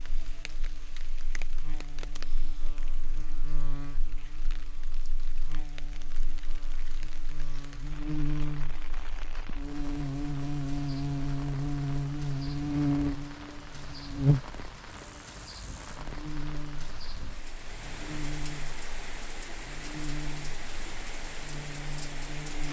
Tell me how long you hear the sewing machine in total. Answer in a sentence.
You can't hear the sewing machine here.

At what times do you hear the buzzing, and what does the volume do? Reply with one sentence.
The buzzing can be heard from 0.0 to 22.6 s, getting louder then quieter.